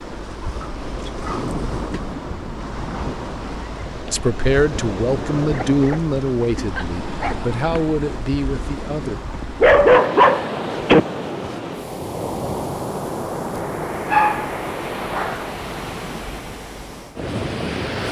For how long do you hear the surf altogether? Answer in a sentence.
The surf can be heard for 18 seconds in total.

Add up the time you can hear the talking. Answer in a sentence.
The talking can be heard for 5 seconds in total.